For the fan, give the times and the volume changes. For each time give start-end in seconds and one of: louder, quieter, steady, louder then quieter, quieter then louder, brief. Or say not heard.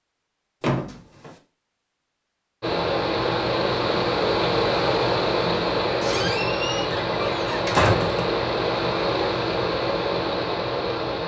2.6-11.2 steady.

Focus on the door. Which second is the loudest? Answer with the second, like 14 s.
8 s.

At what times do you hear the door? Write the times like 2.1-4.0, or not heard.
0.6-1.4, 6.0-8.2.